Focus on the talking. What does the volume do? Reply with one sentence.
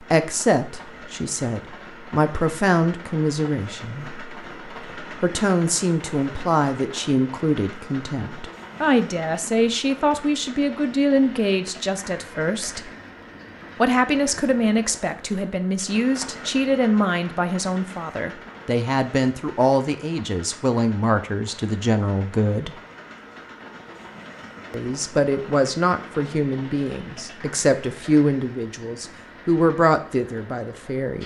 The loudness of the talking stays about the same.